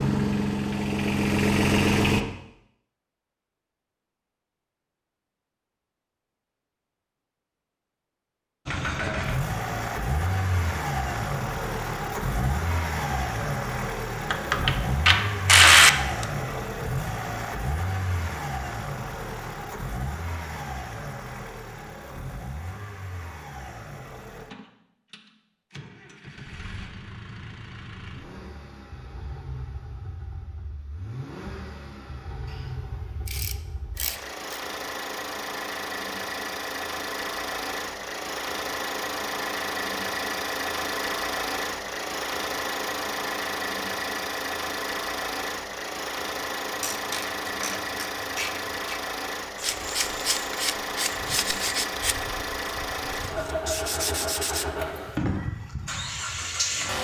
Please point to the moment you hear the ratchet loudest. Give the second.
16 s.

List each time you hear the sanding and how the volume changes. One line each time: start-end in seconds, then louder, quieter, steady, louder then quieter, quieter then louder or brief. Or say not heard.
49.5-54.6 quieter then louder.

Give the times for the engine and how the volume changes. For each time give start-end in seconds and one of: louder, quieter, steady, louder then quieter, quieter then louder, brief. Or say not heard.
0.0-2.2 brief
8.7-56.9 quieter then louder.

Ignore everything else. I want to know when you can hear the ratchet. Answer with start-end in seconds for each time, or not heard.
14.3-16.2, 33.2-34.6, 46.8-49.0.